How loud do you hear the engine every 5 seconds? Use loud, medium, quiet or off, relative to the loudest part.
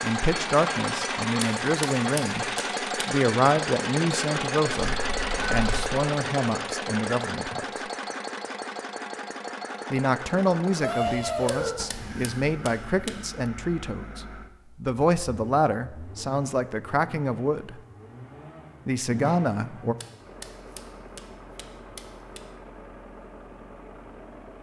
loud, loud, medium, quiet, quiet.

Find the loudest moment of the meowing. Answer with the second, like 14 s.
11 s.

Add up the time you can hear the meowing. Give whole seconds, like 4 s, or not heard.
3 s.